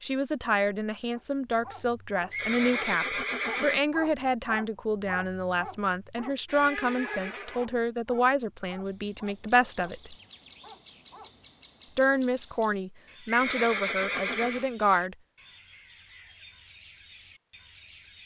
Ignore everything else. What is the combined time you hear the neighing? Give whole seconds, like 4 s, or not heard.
4 s.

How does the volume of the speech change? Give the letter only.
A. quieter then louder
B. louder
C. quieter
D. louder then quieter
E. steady
E.